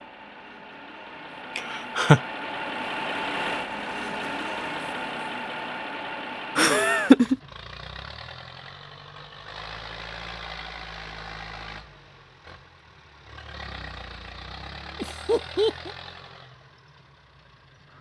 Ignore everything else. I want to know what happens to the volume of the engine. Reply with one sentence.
The volume of the engine goes down.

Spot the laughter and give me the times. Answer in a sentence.
You can hear the laughter from 1.6 to 2.2 s, from 6.5 to 7.3 s and from 14.9 to 15.9 s.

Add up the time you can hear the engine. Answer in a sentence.
You can hear the engine for 18 seconds altogether.